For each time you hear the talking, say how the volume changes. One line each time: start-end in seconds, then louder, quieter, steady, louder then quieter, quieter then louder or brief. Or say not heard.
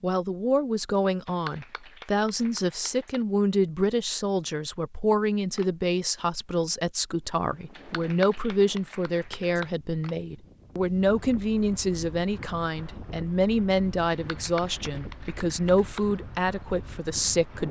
0.0-17.6 steady.